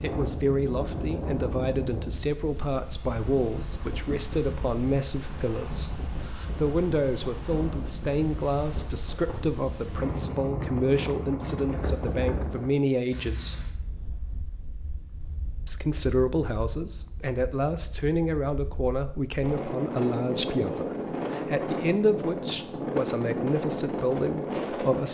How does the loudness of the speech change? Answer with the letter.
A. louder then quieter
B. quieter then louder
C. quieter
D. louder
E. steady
E.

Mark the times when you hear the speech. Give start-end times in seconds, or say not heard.
0.0-13.7, 15.7-25.0.